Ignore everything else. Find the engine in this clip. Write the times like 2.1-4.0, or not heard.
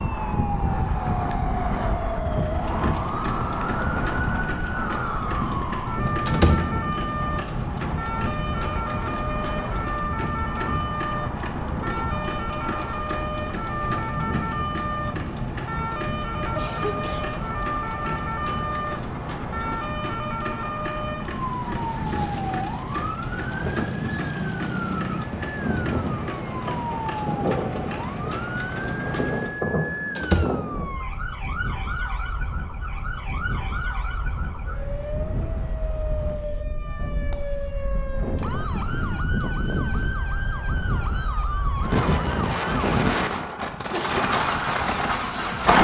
2.4-29.6, 44.0-45.8.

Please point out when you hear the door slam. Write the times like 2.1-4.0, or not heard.
6.2-6.7, 30.1-30.6.